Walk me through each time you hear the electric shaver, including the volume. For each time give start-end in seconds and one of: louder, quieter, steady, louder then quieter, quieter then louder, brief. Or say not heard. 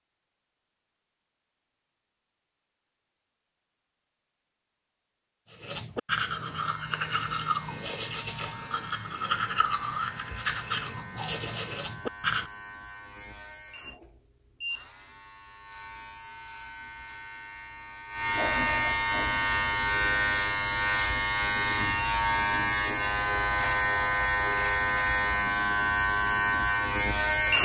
6.6-27.6 louder.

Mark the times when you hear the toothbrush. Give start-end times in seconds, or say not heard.
5.5-12.5.